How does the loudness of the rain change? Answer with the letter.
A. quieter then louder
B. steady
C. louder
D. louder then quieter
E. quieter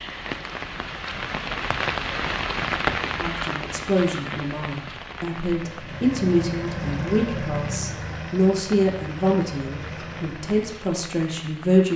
E.